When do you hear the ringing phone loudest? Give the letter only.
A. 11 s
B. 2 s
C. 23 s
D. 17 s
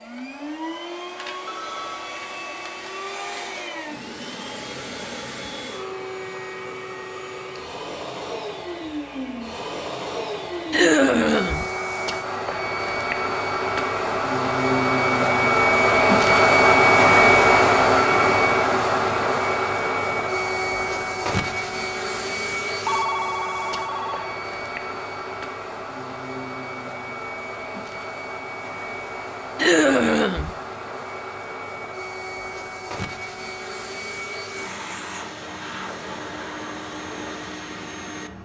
C.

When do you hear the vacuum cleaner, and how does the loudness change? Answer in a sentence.
The vacuum cleaner can be heard from 0.0 to 38.3 s, getting louder then quieter.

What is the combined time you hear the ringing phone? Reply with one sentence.
The ringing phone can be heard for 2 seconds in total.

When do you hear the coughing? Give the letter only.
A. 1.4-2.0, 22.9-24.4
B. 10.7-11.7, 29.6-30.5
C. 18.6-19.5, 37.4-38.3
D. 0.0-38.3
B.